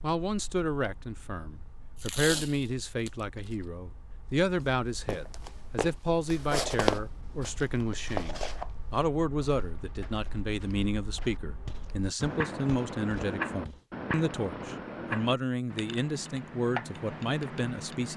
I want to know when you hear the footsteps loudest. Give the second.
7 s.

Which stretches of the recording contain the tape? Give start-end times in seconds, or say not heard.
1.9-3.1.